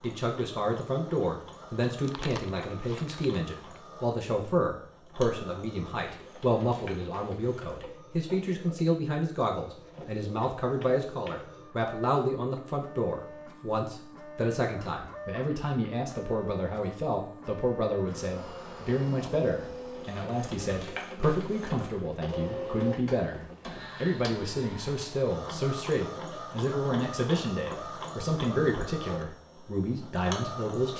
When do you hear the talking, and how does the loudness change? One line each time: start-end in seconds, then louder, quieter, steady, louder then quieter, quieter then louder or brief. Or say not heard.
0.0-23.4 steady
24.0-30.9 steady.